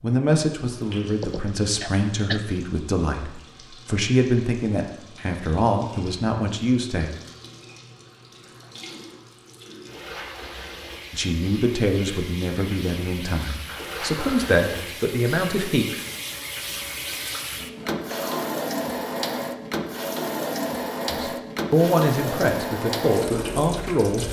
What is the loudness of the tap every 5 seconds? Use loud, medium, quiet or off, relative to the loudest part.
quiet, quiet, medium, loud, loud.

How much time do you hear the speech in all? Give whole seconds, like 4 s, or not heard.
15 s.